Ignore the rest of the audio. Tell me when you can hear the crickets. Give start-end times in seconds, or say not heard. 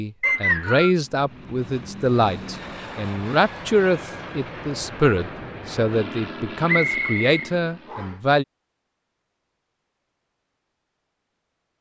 not heard.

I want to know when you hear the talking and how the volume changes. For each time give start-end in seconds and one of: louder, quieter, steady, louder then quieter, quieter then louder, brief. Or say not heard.
0.0-8.4 steady.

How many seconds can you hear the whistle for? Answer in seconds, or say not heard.
2 s.